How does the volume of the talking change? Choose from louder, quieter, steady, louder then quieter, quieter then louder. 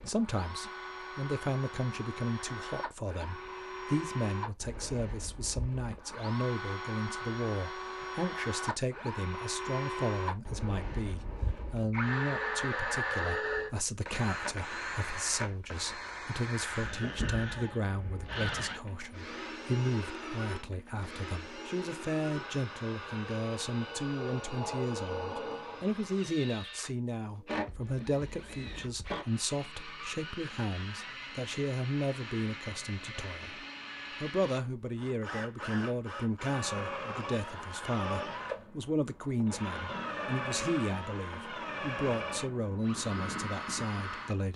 steady.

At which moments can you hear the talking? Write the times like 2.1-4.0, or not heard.
0.0-44.5.